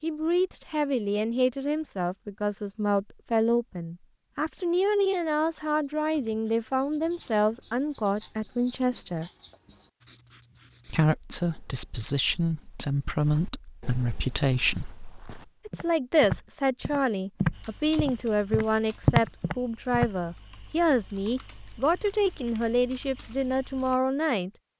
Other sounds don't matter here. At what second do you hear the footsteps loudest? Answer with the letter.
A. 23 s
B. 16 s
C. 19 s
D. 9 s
C.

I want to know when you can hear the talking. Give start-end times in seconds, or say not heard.
0.0-9.3, 10.8-14.9, 15.7-24.5.